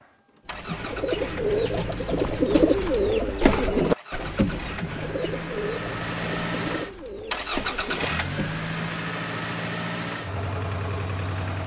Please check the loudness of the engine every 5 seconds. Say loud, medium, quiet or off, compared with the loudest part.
medium, loud, loud.